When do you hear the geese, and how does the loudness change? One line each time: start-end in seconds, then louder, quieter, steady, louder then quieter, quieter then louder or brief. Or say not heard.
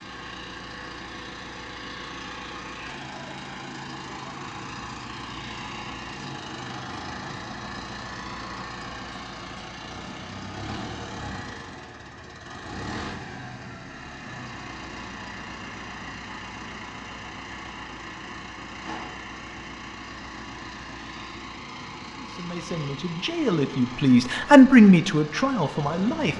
not heard.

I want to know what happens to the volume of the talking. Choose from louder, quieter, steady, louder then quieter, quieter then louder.
louder then quieter.